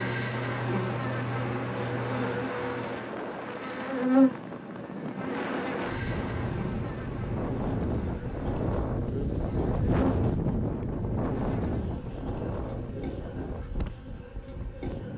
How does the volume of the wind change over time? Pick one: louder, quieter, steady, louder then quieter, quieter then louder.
louder then quieter.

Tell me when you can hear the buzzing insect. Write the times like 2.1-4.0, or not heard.
0.0-15.1.